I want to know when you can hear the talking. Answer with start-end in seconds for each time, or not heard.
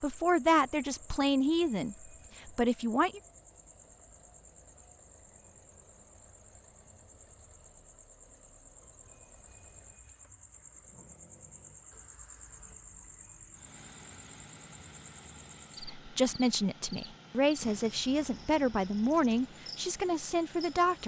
0.0-3.2, 15.8-21.0.